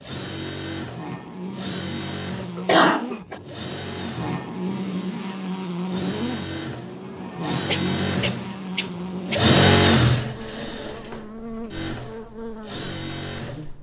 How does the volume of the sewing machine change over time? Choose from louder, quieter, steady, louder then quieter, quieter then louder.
louder then quieter.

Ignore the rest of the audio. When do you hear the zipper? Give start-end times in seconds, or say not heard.
not heard.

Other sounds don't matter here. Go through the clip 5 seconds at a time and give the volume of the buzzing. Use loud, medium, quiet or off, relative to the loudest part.
loud, loud, medium.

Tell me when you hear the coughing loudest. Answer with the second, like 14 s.
3 s.